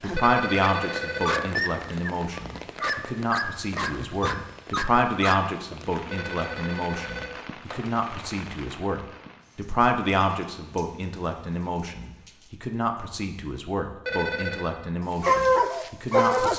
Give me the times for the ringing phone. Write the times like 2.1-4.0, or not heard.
0.1-1.4, 6.1-7.9, 14.1-14.7.